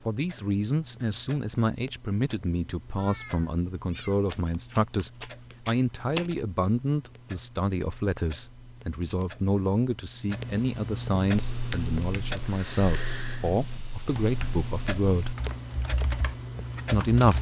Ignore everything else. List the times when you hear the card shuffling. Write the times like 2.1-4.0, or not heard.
4.2-6.3.